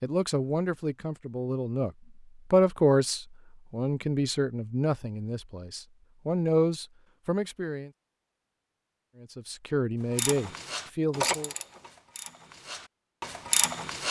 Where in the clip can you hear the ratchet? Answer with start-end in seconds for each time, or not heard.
10.2-14.0.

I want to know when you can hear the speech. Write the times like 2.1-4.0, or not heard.
0.0-7.9, 9.2-11.5.